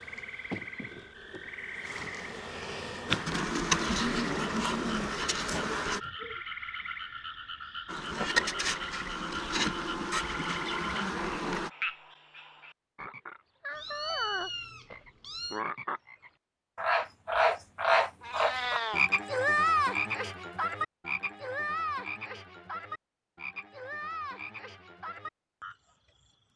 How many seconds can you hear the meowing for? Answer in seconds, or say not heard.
3 s.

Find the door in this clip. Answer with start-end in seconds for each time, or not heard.
not heard.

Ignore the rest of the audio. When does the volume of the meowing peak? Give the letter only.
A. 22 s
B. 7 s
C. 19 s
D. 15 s
C.